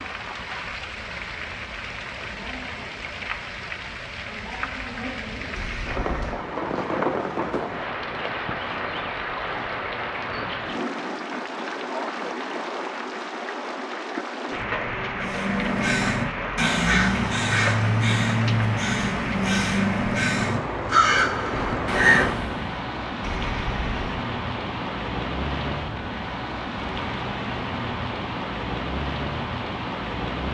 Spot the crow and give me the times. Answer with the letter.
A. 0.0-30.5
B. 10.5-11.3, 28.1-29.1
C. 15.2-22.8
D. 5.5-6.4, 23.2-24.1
C.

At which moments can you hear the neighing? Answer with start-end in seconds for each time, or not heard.
5.5-6.4, 23.2-24.1.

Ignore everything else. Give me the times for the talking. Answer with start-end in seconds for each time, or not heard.
not heard.